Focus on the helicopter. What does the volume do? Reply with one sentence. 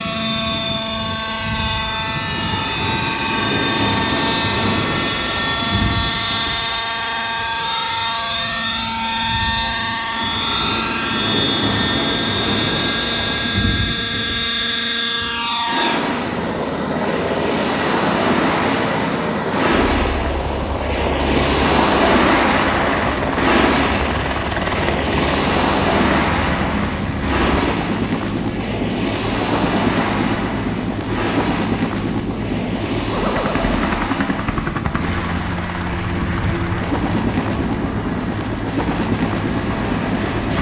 The volume of the helicopter stays about the same.